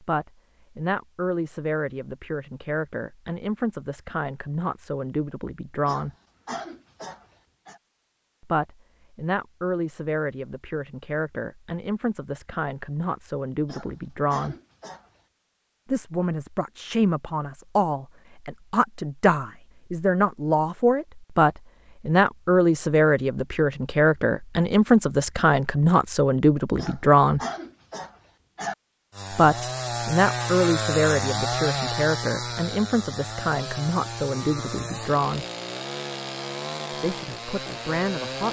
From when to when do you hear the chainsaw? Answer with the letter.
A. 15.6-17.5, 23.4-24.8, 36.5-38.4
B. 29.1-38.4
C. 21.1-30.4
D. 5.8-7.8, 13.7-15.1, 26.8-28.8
B.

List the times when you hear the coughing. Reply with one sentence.
The coughing can be heard from 5.8 to 7.8 s, from 13.7 to 15.1 s and from 26.8 to 28.8 s.